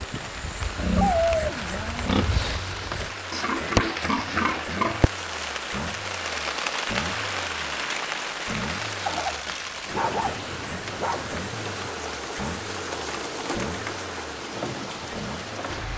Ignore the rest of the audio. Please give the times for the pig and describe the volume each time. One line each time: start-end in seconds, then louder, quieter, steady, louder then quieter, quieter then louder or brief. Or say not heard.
0.0-5.0 quieter then louder.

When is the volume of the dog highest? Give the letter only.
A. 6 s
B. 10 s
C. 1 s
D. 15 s
C.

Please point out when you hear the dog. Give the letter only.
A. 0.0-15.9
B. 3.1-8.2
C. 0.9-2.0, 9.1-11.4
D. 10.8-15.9
C.